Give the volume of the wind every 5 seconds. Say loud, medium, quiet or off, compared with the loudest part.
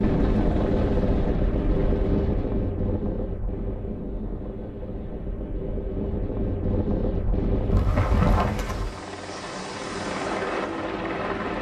loud, loud, off.